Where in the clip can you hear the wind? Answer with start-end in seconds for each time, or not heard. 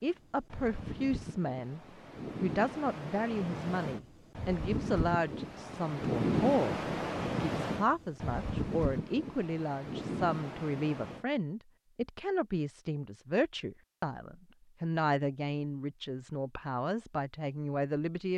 0.0-11.2.